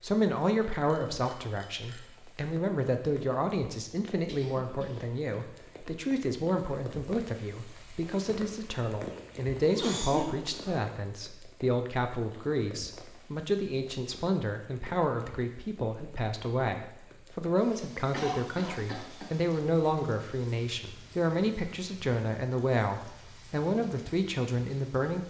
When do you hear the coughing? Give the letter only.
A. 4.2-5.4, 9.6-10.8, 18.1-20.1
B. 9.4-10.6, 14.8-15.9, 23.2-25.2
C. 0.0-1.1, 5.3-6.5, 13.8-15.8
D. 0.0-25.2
A.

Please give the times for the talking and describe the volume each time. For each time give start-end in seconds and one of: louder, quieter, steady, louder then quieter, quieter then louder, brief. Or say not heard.
0.0-25.2 steady.